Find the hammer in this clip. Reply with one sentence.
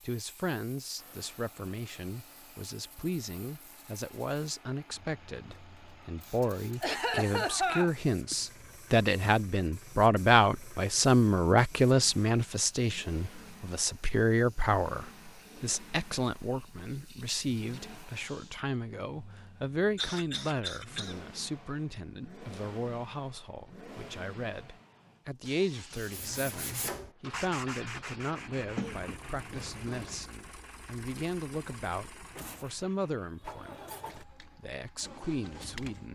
You can't hear the hammer here.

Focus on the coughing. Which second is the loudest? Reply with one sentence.
The loudest moment of the coughing is at 8 seconds.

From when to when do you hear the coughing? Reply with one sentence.
You can hear the coughing from 6.8 to 8.3 s, from 19.9 to 21.1 s and from 28.6 to 30.2 s.